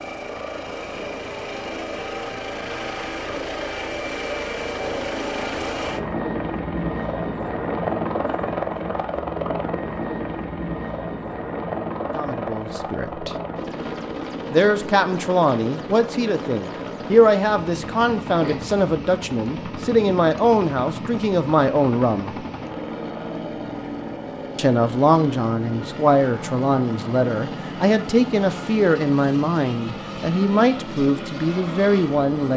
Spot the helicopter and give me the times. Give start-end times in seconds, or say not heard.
0.0-32.5.